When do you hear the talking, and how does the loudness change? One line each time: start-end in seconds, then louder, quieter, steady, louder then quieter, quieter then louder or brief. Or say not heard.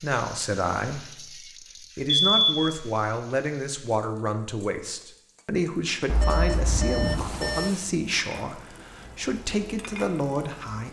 0.0-10.8 steady.